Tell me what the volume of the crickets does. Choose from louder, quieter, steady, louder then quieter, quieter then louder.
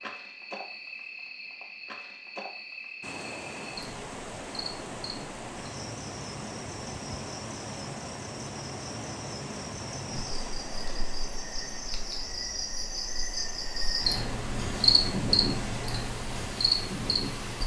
louder.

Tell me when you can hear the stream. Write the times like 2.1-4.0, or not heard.
3.0-17.6.